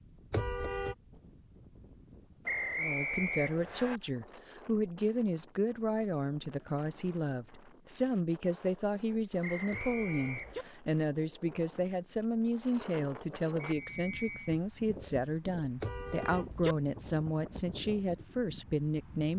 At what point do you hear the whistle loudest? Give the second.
3 s.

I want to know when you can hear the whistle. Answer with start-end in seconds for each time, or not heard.
2.5-4.0, 9.4-10.8, 13.6-14.6.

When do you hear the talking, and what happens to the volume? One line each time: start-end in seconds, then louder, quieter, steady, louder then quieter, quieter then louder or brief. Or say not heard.
2.8-19.3 steady.